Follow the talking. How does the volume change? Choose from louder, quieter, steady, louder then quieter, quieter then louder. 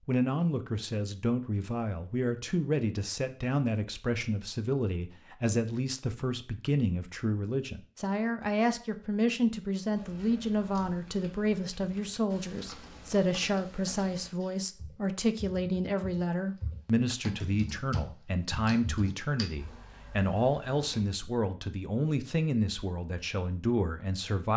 steady.